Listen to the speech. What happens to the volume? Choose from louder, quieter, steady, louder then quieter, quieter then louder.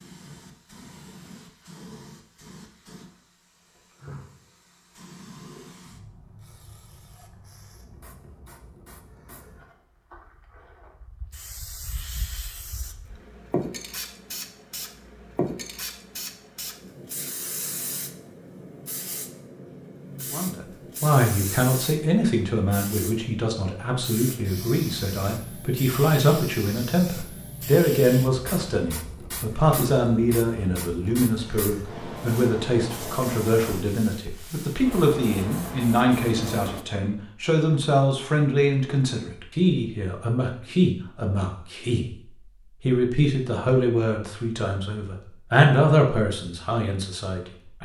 steady.